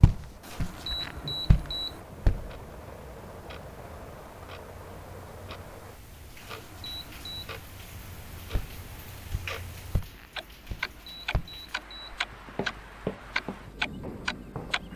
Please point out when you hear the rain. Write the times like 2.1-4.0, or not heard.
0.0-14.9.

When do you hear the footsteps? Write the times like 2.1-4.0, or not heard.
0.0-2.5, 8.5-14.9.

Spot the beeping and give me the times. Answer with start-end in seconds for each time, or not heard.
0.4-2.0, 6.4-7.5, 10.6-12.2.